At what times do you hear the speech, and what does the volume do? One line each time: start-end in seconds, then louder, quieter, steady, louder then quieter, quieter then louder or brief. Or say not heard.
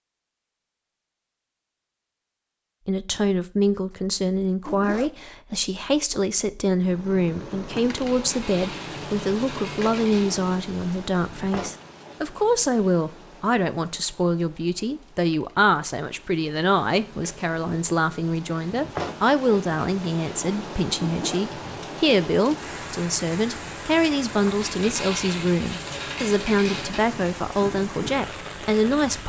2.9-29.2 steady.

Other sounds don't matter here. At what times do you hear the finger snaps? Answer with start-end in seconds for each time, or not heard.
not heard.